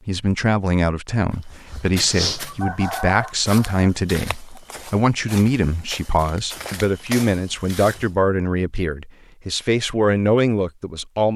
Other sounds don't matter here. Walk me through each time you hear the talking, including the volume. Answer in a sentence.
The talking can be heard from 0.1 to 11.3 s, at a steady volume.